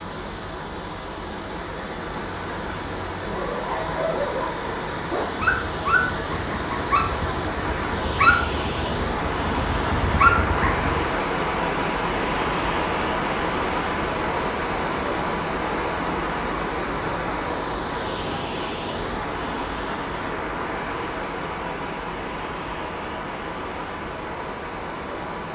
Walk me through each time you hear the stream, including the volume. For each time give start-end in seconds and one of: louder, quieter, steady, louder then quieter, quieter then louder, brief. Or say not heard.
0.0-25.5 louder then quieter.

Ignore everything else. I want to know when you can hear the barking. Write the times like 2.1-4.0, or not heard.
3.3-11.1.